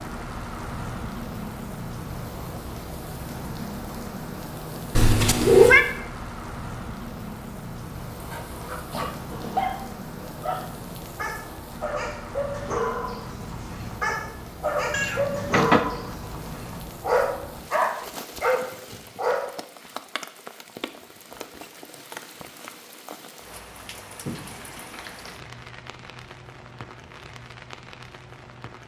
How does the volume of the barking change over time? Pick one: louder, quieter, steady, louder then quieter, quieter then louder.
louder.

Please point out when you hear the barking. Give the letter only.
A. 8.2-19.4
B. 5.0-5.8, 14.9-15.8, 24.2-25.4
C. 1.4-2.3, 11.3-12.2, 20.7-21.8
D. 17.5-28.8
A.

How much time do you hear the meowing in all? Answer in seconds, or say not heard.
3 s.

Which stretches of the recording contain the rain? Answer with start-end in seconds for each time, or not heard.
0.0-28.8.